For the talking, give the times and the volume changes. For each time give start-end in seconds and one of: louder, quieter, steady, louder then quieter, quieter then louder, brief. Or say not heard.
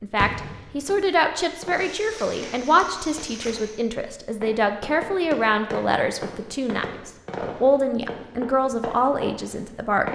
0.0-10.1 steady.